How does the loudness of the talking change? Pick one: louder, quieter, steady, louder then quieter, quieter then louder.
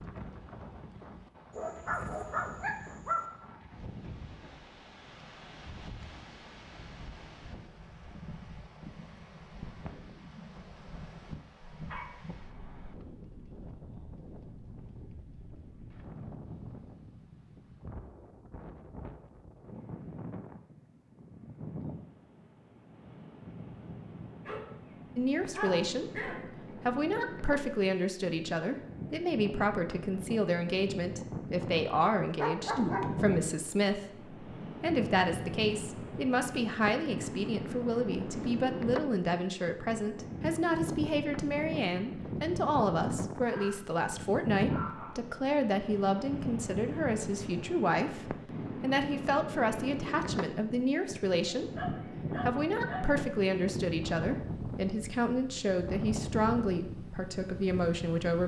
steady.